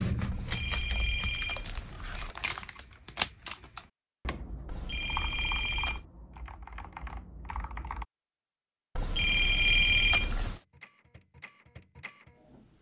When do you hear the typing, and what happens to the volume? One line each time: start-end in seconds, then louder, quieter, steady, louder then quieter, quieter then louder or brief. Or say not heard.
0.0-8.1 quieter.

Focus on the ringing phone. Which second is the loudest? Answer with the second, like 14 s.
10 s.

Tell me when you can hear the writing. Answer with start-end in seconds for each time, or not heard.
not heard.